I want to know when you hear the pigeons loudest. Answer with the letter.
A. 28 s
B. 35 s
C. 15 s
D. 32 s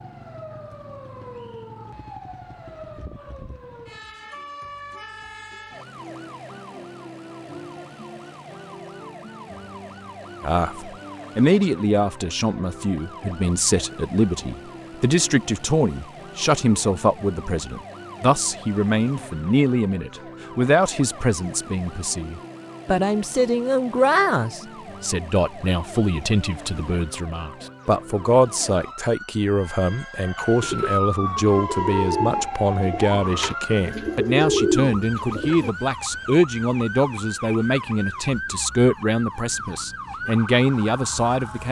B.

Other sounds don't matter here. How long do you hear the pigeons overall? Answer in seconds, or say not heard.
5 s.